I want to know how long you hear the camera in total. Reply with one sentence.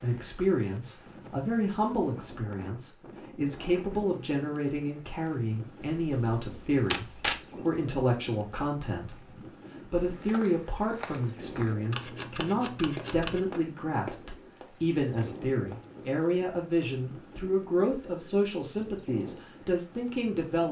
You can hear the camera for 3 seconds altogether.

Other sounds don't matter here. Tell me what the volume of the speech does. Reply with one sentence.
The volume of the speech stays about the same.